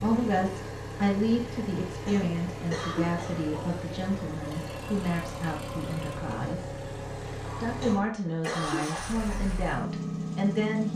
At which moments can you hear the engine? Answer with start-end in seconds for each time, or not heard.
0.0-10.9.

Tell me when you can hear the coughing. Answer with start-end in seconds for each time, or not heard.
2.0-3.8, 7.8-9.2.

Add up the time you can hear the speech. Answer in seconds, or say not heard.
10 s.